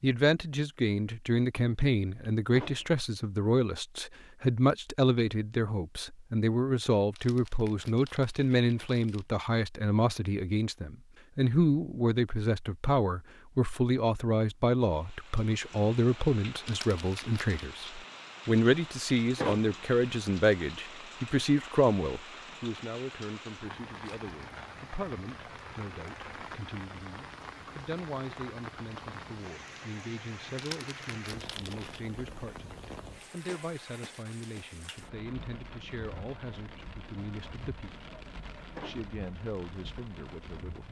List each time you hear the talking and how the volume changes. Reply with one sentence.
The talking can be heard from 0.0 to 38.0 s, getting quieter; and briefly from 38.8 to 40.8 s.